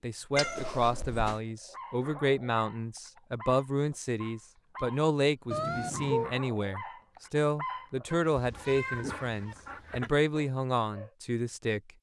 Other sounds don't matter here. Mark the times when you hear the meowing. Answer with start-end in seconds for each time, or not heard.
0.3-1.4, 5.5-6.3, 8.1-9.6.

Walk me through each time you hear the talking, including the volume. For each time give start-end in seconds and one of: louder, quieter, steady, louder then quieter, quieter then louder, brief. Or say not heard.
0.0-11.9 steady.